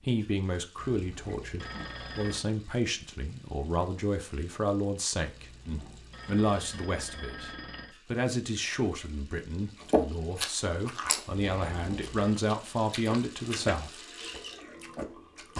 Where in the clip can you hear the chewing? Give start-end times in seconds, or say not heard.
9.9-15.5.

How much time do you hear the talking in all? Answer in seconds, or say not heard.
14 s.